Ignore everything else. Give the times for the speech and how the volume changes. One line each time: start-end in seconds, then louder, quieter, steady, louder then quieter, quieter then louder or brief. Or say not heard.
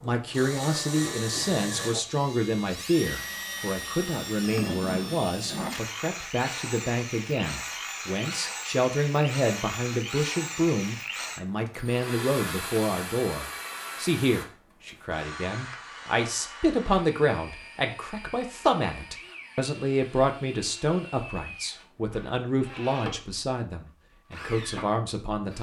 0.0-25.5 steady.